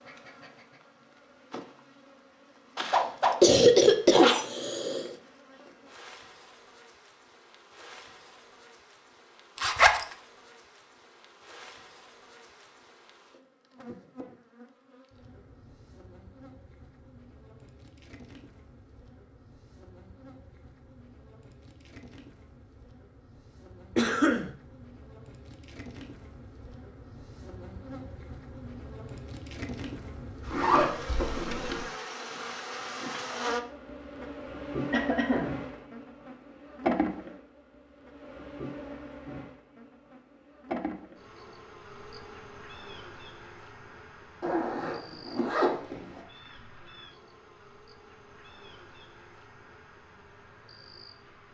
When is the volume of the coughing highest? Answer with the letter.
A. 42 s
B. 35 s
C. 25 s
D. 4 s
D.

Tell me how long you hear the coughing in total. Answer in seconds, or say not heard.
4 s.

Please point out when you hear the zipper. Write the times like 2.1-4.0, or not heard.
9.6-10.1, 30.5-31.9, 44.4-46.2.